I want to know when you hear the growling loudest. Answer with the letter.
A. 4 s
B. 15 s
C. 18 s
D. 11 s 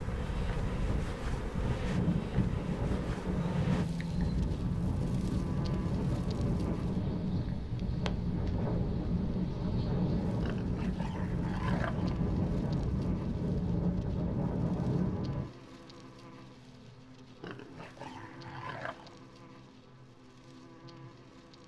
A.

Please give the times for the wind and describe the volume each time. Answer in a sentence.
The wind can be heard from 0.0 to 15.5 s, at a steady volume.